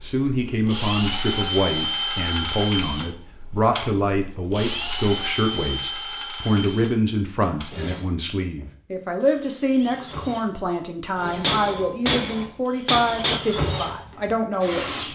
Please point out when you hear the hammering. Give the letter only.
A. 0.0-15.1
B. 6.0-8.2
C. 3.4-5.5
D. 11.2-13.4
D.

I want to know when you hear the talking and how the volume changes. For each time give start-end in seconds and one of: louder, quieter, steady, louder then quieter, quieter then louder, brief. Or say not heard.
0.0-15.1 steady.